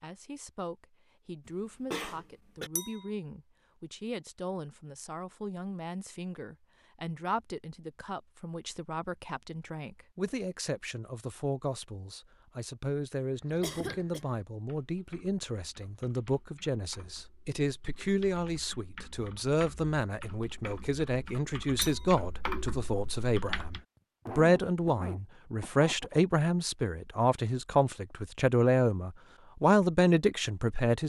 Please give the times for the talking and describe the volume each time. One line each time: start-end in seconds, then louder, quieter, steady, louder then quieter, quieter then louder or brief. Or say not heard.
0.0-31.0 louder.